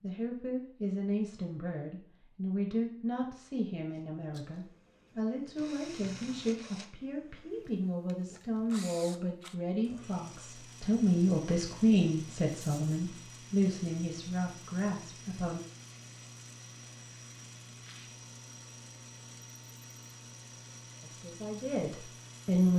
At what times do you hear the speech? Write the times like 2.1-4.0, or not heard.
0.0-15.6, 21.0-22.7.